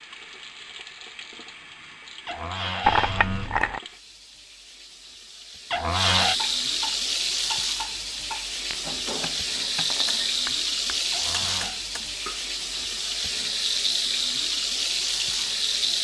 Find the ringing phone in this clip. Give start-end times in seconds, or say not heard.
not heard.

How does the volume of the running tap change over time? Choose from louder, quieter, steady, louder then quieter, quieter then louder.
louder.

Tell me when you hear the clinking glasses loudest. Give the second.
3 s.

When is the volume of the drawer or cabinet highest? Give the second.
6 s.